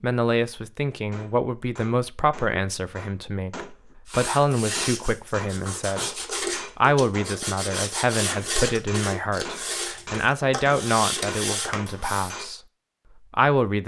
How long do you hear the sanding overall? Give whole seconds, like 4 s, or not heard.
8 s.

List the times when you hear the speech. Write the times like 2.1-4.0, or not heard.
0.0-6.1, 6.8-12.6, 13.3-13.8.